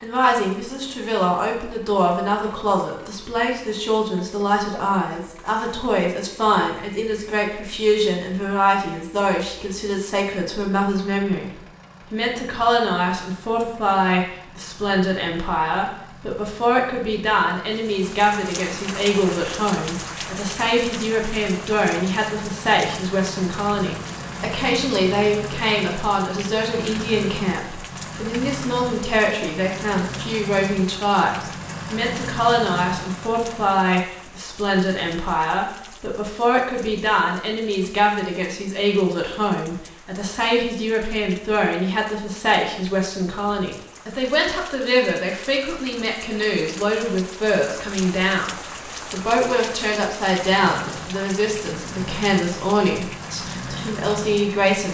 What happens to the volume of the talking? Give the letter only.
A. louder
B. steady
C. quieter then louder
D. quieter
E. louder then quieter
B.